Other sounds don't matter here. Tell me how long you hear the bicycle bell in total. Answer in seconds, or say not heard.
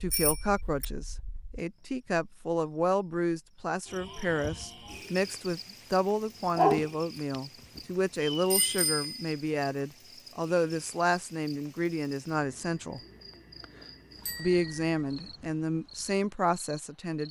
2 s.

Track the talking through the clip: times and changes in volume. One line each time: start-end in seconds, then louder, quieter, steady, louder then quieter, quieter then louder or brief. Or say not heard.
0.0-13.0 steady
14.3-17.2 brief.